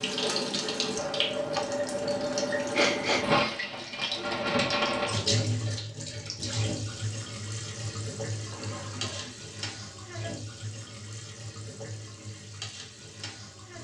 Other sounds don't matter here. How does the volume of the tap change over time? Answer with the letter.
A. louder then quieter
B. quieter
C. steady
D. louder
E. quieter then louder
B.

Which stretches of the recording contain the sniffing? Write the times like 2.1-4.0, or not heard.
2.8-3.2, 8.5-9.3.